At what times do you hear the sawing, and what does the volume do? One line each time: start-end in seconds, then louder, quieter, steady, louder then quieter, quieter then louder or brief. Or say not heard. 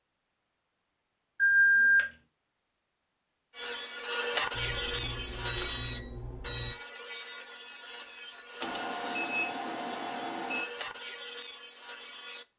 3.5-12.4 quieter.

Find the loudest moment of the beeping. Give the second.
2 s.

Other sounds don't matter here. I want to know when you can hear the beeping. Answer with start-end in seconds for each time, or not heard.
1.4-2.0, 4.5-6.8, 8.6-10.7.